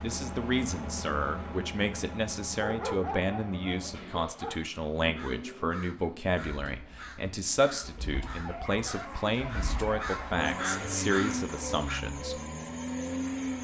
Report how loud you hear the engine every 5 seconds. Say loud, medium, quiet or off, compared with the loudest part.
medium, medium, loud.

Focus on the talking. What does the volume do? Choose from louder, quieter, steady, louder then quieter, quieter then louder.
steady.